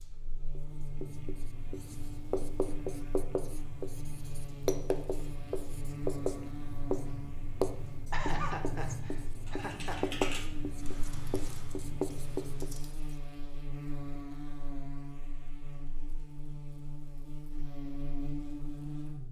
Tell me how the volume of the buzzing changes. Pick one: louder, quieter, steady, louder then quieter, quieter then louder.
steady.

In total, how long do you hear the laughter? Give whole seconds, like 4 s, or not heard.
2 s.